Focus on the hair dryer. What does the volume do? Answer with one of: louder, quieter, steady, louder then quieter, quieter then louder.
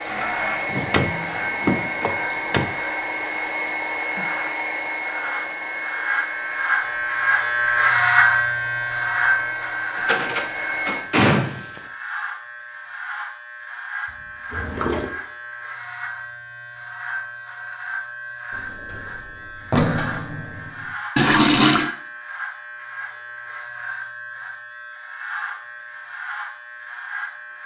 quieter.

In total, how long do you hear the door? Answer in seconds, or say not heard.
6 s.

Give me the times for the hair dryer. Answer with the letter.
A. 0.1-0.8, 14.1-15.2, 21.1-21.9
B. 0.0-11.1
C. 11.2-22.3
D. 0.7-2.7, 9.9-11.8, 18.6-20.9
B.